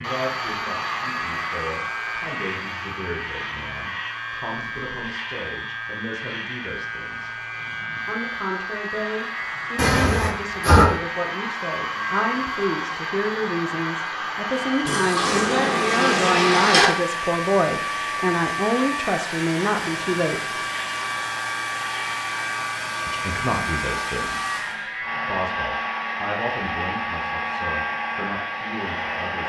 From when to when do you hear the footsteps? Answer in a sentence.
The footsteps can't be heard in this clip.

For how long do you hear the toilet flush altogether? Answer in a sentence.
You can hear the toilet flush for 3 seconds altogether.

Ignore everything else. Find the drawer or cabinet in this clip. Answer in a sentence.
You can't hear the drawer or cabinet here.